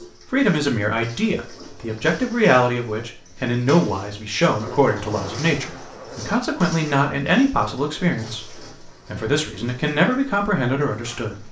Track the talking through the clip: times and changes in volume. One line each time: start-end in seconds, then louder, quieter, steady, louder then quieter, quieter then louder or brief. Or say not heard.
0.3-11.4 steady.